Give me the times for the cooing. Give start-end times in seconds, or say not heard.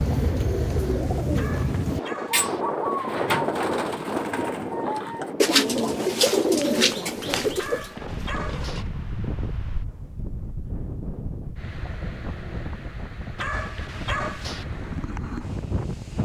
0.0-7.9.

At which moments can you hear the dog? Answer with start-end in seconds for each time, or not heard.
1.4-2.6, 7.5-8.8, 13.3-14.7.